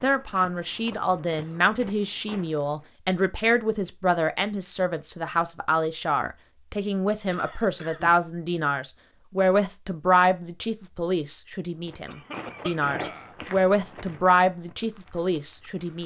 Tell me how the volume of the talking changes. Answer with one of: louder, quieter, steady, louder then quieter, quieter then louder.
steady.